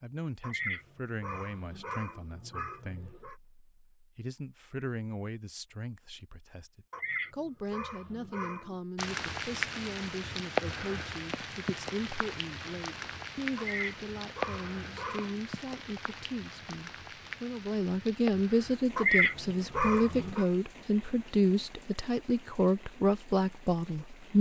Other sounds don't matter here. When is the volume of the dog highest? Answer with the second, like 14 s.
19 s.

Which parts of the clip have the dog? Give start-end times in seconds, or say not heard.
0.4-3.4, 6.9-8.8, 13.6-15.4, 18.9-20.4.